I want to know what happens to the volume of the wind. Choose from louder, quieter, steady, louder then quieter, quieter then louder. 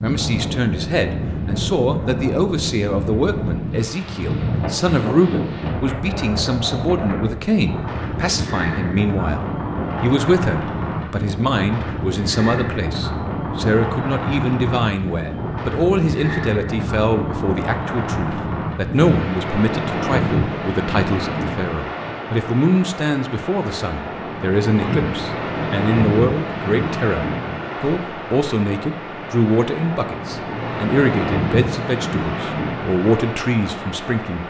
steady.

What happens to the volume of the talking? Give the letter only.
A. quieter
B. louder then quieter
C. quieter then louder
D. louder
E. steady
E.